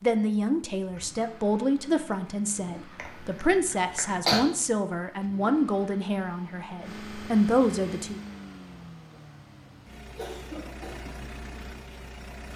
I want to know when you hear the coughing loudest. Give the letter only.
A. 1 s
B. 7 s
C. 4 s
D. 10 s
C.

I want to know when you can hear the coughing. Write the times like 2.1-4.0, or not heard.
3.0-4.4, 9.1-11.0.